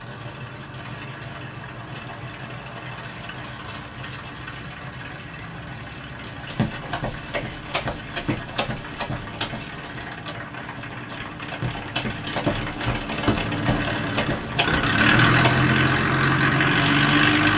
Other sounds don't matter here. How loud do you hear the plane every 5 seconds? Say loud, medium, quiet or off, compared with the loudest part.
quiet, quiet, medium, loud.